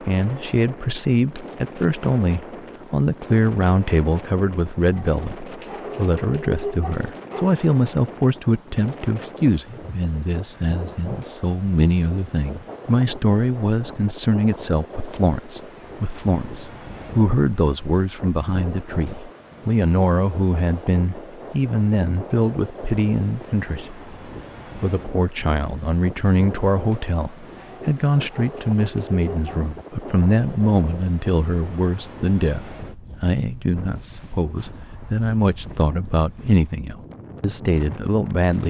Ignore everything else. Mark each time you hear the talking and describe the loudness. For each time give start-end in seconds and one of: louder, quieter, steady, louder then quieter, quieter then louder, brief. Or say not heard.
0.0-24.1 steady
24.8-38.6 steady.